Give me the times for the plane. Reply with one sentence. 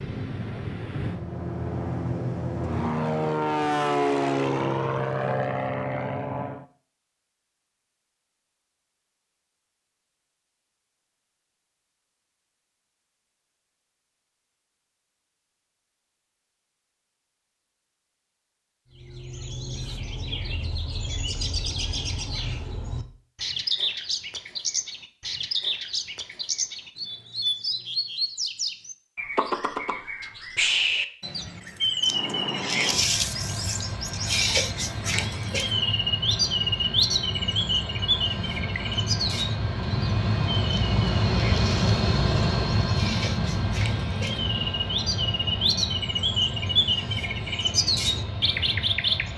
You can hear the plane from 0.0 to 6.7 s and from 32.0 to 49.3 s.